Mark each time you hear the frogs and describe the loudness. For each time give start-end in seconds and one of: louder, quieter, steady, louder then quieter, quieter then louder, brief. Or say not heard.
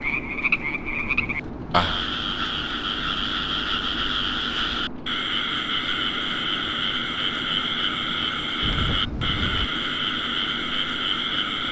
0.0-11.6 steady.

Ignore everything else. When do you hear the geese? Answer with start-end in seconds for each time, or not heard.
1.0-1.9, 8.6-9.7.